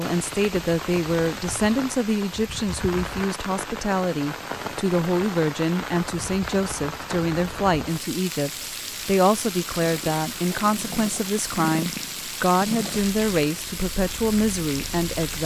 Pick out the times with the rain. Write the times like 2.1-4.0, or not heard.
0.0-15.4.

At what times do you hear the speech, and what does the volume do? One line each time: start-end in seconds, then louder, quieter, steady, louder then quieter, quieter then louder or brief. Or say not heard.
0.0-15.4 steady.